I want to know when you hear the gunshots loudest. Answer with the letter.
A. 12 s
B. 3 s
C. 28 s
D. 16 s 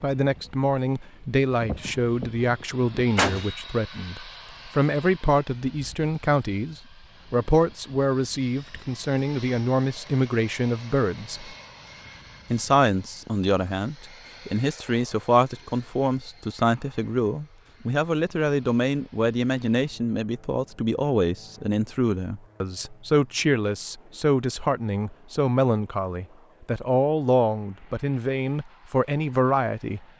B.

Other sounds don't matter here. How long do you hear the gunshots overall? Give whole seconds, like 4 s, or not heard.
2 s.